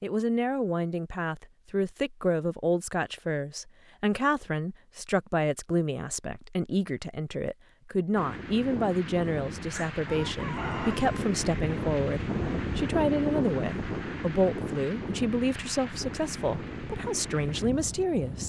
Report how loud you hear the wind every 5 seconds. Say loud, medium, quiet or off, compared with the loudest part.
off, medium, loud, medium.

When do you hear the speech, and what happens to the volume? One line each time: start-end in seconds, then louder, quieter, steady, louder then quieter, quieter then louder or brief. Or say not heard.
0.0-18.4 steady.